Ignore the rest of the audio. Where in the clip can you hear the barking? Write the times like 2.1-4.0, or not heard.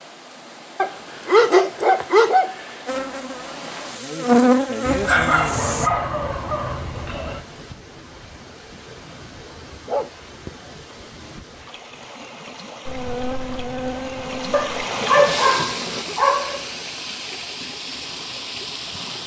0.8-2.6, 4.8-7.4, 9.8-10.5, 14.5-16.6.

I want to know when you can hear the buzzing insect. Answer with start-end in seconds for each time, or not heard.
2.9-5.9, 12.8-16.1.